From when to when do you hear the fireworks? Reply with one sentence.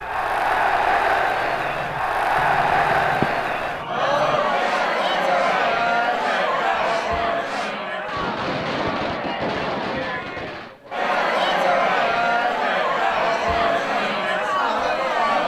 You can hear the fireworks from 1.4 to 11.0 s.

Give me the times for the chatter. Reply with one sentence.
You can hear the chatter from 0.0 to 15.4 s.